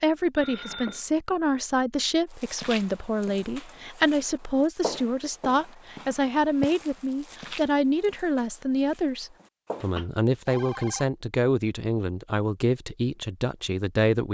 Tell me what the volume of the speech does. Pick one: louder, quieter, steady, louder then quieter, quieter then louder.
steady.